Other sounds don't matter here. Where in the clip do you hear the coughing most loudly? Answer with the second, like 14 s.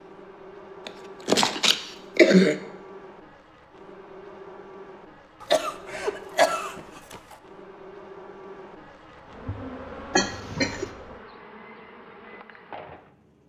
2 s.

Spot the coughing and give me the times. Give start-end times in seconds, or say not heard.
0.8-2.5, 5.4-7.3, 10.1-10.9.